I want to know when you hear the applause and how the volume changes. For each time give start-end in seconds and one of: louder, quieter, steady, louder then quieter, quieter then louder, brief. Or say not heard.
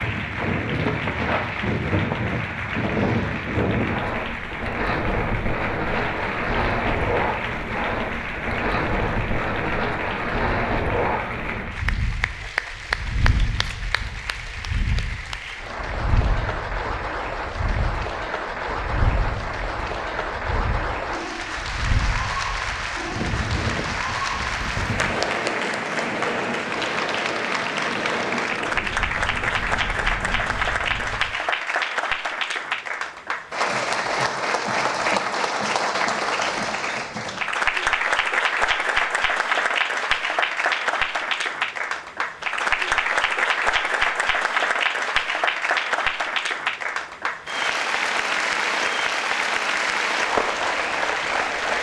0.0-51.7 louder.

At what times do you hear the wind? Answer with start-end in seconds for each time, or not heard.
0.0-31.4.